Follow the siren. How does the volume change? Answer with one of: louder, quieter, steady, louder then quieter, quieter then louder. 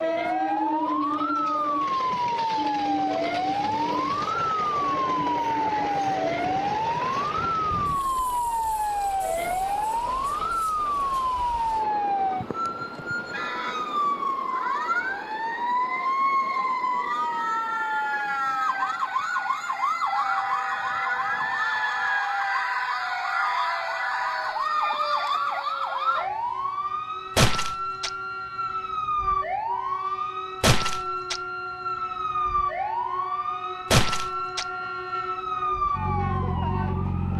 steady.